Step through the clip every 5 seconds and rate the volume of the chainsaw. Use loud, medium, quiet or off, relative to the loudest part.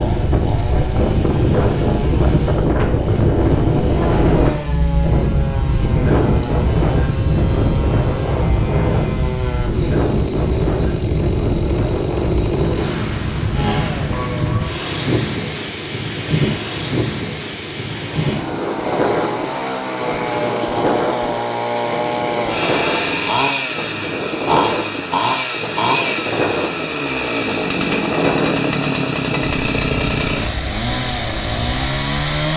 medium, medium, medium, medium, loud, loud, loud.